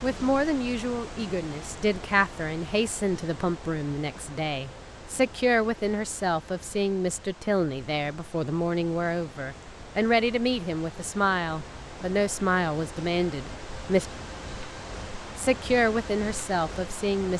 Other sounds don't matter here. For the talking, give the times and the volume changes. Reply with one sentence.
You can hear the talking from 0.0 to 14.1 s, at a steady volume; and briefly from 15.3 to 17.3 s.